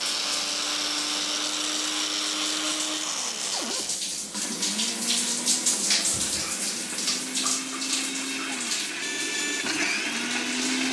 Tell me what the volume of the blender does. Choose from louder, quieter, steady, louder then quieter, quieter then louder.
quieter then louder.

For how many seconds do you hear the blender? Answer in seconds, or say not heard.
11 s.